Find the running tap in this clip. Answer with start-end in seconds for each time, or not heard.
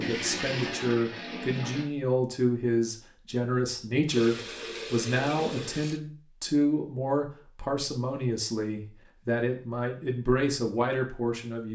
0.0-1.9, 4.0-6.0.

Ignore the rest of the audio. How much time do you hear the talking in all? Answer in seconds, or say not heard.
12 s.